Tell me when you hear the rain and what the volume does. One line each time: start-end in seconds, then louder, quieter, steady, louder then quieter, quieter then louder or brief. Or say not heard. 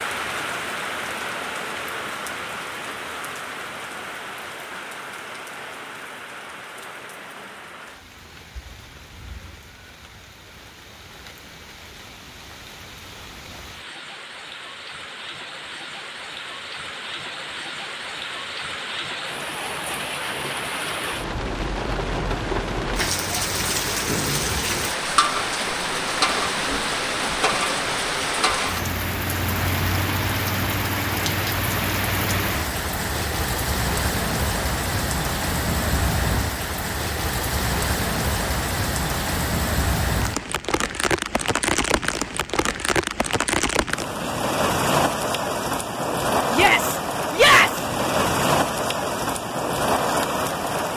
0.0-50.9 louder.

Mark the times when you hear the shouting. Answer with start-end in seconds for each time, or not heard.
46.5-47.8.